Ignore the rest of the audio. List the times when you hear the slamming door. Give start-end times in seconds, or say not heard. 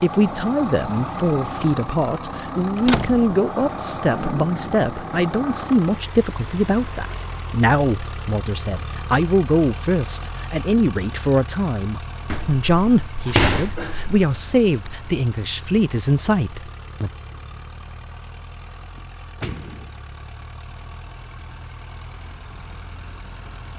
2.8-3.2, 12.3-14.2, 18.9-20.0.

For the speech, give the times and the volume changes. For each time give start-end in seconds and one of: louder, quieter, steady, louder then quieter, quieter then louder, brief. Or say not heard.
0.0-17.1 steady.